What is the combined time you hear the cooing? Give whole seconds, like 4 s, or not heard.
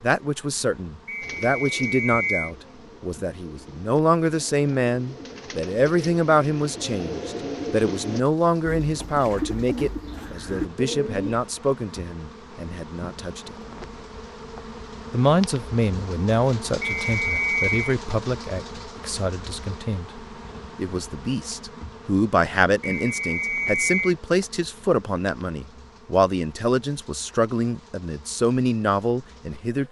10 s.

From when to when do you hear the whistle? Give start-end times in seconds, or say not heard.
1.1-2.5, 16.8-17.9, 22.8-24.1.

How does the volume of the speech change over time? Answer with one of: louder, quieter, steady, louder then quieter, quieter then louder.
steady.